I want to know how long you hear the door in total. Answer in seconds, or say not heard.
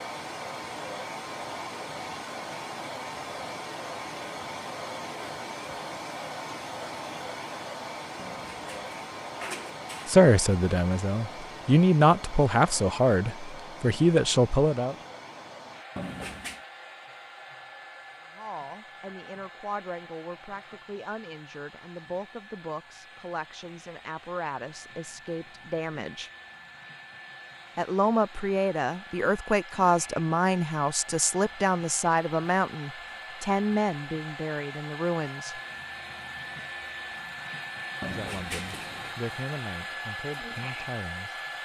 4 s.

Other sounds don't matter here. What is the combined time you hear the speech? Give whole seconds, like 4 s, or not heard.
24 s.